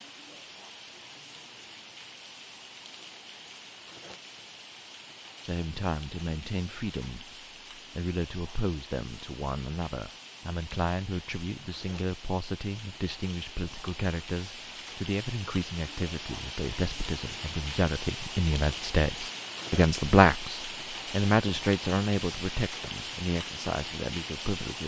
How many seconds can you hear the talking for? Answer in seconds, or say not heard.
19 s.